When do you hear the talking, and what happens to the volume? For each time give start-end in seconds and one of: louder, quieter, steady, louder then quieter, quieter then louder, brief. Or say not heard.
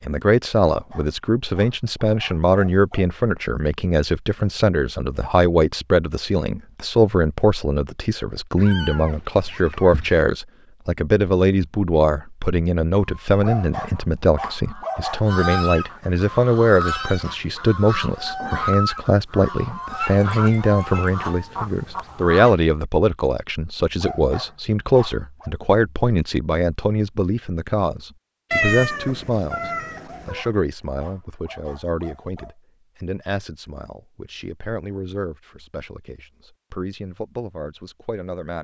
0.0-38.5 quieter.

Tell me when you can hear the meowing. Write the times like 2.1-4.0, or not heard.
8.6-10.2, 20.4-21.6, 28.5-30.4.